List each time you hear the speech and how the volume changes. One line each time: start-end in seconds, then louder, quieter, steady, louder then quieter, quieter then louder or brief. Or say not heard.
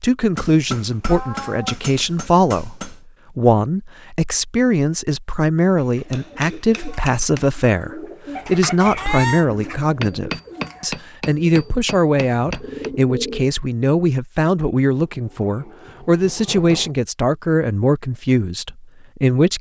0.0-19.5 steady.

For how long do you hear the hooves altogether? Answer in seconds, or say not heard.
not heard.